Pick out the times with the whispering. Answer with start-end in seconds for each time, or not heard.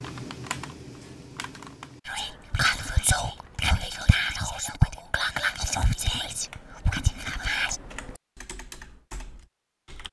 2.0-7.8.